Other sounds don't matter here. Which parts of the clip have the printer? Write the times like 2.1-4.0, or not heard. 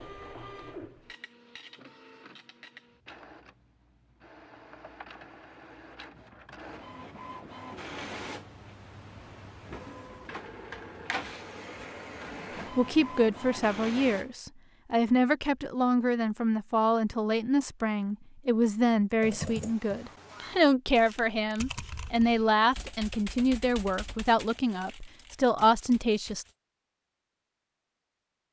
0.0-14.3.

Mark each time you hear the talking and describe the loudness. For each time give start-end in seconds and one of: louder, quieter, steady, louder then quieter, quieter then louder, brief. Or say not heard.
12.8-26.4 steady.